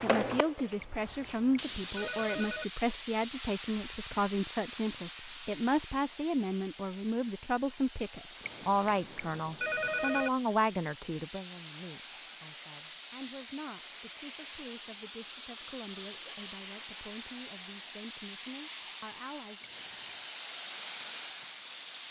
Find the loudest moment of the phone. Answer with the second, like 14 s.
10 s.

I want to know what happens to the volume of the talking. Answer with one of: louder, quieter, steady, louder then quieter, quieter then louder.
quieter.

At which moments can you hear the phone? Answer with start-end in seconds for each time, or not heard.
0.8-2.6, 8.4-10.3, 19.6-20.2.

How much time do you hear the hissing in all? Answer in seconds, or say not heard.
22 s.